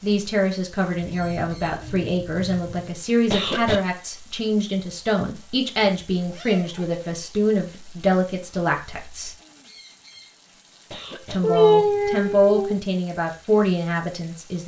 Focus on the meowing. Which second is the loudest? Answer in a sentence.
The volume of the meowing peaks at 12 seconds.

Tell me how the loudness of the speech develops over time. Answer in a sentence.
The loudness of the speech stays about the same.